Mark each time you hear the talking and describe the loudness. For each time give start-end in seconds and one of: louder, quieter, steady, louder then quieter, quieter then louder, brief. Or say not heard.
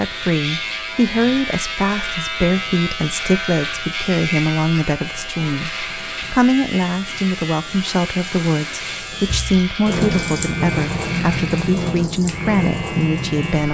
0.0-13.6 steady.